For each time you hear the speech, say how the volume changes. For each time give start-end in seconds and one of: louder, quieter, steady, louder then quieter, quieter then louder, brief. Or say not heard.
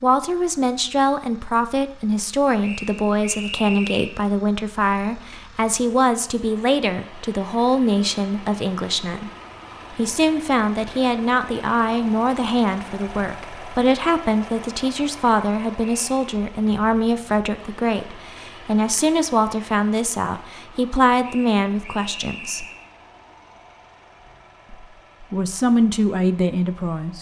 0.0-9.3 steady
9.9-22.6 steady
24.7-27.1 brief.